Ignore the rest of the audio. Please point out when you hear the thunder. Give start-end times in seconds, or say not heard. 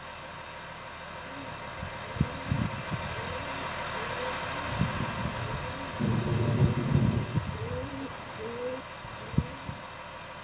4.7-7.5.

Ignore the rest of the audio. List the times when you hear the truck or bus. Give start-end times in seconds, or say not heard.
0.0-10.4.